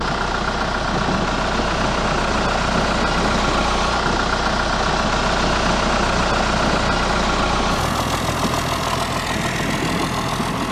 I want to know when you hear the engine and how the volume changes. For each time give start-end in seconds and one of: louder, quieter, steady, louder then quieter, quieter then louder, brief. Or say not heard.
0.0-10.6 steady.